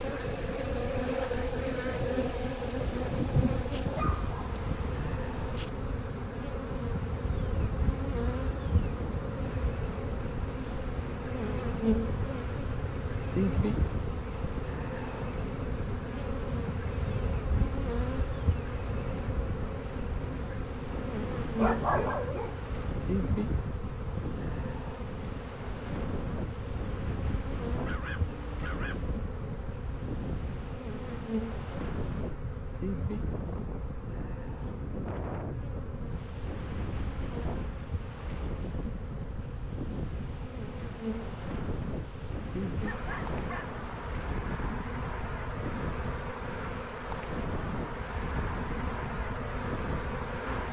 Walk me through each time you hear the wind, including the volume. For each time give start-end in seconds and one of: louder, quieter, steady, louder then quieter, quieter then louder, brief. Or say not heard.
0.0-50.6 steady.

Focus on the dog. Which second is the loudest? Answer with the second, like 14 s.
22 s.